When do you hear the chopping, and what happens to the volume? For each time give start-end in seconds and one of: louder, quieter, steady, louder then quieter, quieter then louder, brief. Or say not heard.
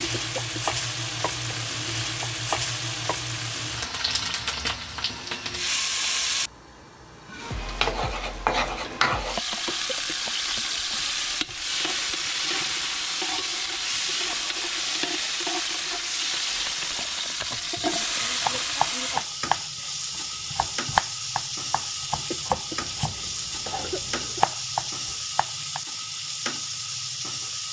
18.4-25.8 quieter then louder.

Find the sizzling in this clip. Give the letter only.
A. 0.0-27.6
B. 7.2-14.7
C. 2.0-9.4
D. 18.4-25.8
A.